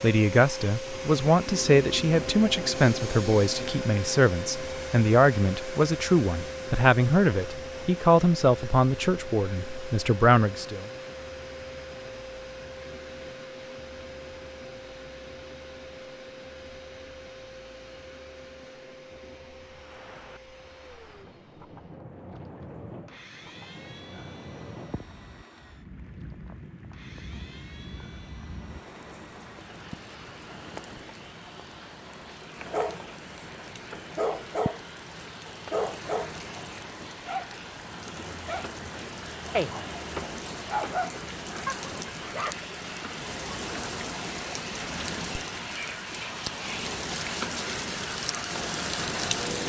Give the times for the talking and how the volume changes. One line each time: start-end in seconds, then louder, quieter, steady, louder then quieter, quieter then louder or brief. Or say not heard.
0.0-10.8 steady.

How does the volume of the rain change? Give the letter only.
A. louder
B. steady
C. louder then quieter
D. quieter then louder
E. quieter
A.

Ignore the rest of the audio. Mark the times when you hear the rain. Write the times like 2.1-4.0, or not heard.
19.6-49.6.